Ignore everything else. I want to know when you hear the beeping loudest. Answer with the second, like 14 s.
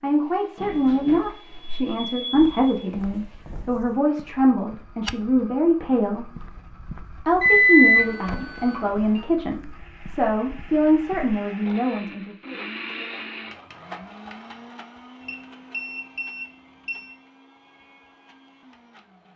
8 s.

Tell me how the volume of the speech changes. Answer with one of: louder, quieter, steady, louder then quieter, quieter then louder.
steady.